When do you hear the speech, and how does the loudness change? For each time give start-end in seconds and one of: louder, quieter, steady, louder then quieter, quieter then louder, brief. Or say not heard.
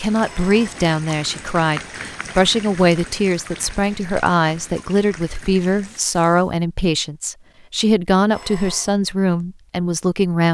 0.0-10.5 steady.